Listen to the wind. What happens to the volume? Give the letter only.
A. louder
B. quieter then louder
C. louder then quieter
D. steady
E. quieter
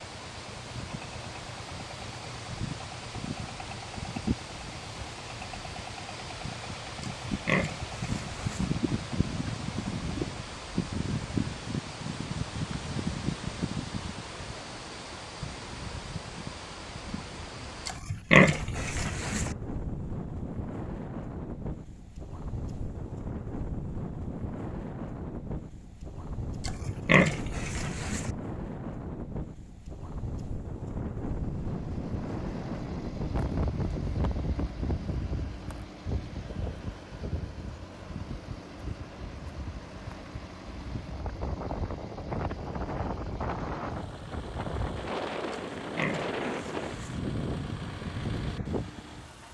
D.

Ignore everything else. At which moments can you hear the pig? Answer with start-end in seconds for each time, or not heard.
7.2-8.7, 17.9-19.6, 26.6-28.3, 45.8-47.2.